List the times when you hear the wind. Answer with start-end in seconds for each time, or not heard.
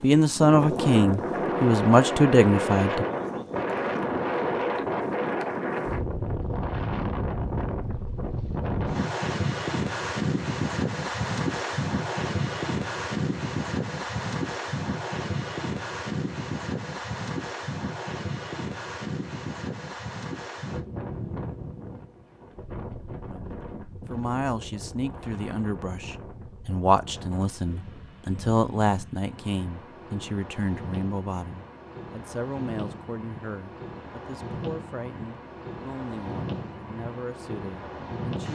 0.0-38.5.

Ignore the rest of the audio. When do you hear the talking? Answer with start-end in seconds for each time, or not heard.
0.0-3.0, 23.3-38.5.